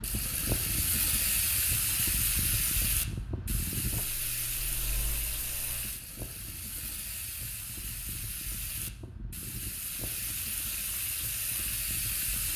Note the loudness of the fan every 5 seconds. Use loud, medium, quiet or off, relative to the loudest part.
loud, medium, medium.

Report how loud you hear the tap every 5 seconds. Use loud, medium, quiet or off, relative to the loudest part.
loud, medium, loud.